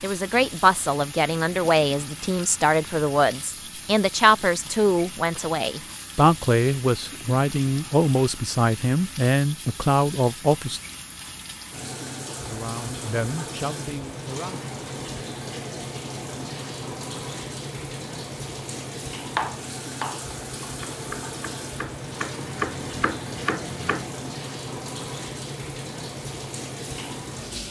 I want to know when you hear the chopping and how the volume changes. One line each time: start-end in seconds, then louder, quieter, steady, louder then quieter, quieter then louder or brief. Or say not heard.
19.3-24.1 quieter then louder.